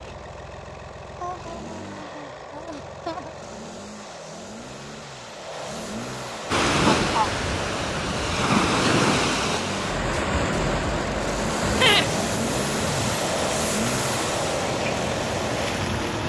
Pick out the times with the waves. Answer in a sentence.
The waves can be heard from 6.5 to 16.2 s.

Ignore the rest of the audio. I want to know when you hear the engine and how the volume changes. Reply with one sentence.
The engine can be heard from 0.0 to 16.2 s, getting louder.